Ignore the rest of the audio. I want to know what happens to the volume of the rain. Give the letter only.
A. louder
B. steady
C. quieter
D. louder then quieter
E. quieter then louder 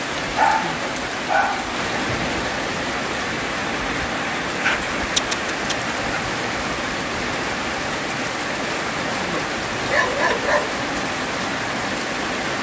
B.